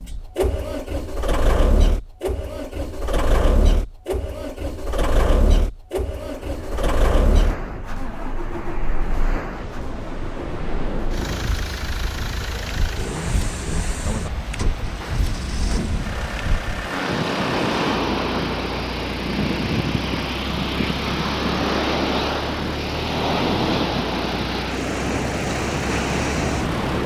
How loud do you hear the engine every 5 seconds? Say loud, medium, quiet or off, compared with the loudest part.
loud, loud, medium, medium, medium, off.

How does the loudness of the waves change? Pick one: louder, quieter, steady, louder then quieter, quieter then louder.
louder.